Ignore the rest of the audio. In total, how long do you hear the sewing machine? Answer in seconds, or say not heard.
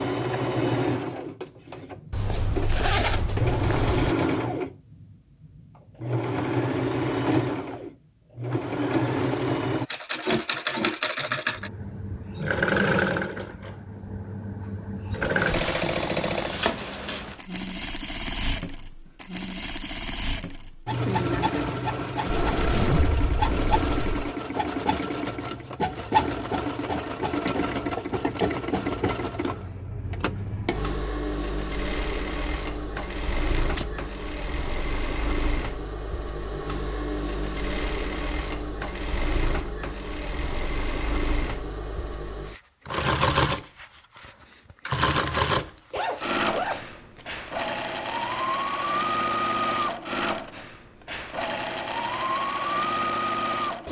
54 s.